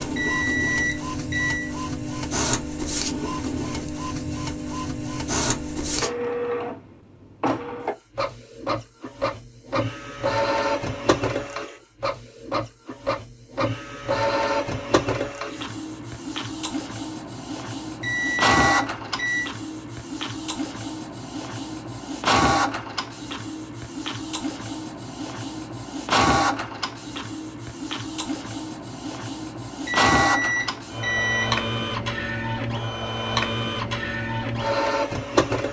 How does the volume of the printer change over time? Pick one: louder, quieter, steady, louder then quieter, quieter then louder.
steady.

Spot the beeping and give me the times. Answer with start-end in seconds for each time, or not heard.
0.1-1.7, 18.0-19.5, 29.9-31.6.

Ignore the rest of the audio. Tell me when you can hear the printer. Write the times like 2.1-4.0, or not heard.
0.0-35.6.